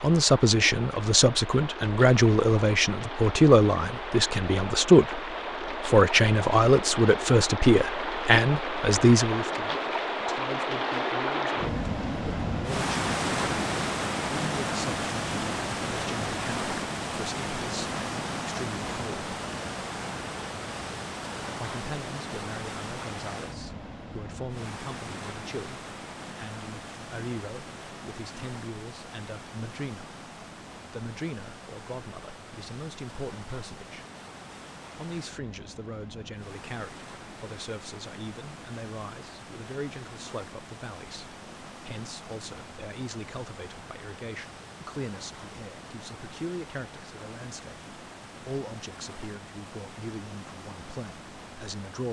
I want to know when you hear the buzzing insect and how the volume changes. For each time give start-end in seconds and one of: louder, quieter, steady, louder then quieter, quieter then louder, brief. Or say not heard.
not heard.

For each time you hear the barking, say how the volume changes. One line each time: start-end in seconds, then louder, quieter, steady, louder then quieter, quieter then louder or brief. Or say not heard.
not heard.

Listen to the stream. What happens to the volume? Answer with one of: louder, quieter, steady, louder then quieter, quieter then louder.
quieter.